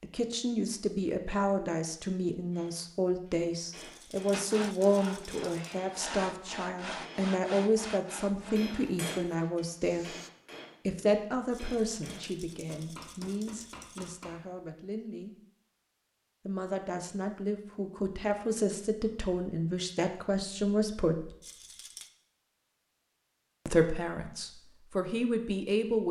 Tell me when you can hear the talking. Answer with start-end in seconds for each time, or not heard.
0.0-10.1, 10.8-15.3, 16.4-21.4, 23.6-26.0.